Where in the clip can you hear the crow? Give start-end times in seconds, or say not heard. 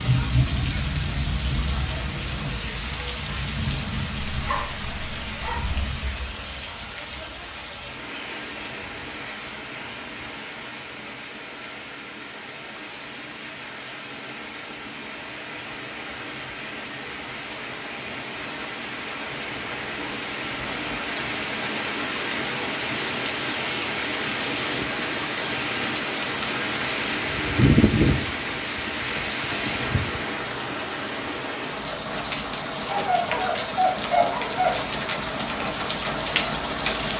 not heard.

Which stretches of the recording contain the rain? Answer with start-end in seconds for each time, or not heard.
0.0-37.1.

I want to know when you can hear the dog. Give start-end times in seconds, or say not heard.
4.3-5.8, 32.9-35.0.